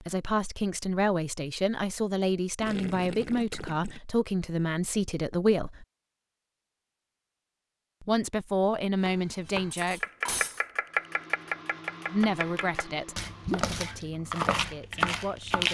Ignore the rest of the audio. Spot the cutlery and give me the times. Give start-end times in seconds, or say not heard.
9.7-10.7.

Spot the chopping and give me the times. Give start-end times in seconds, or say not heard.
9.1-15.6.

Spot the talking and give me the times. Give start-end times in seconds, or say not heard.
0.0-5.8, 8.0-10.0, 12.1-15.6.